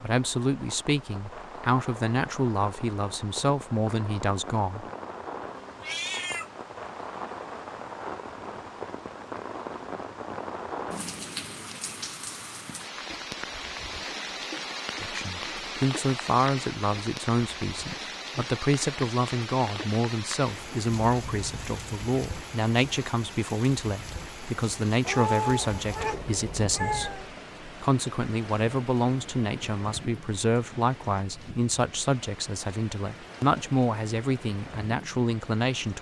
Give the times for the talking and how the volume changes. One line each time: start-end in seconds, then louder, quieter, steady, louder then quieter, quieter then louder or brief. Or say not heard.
0.0-4.8 steady
15.0-35.9 steady.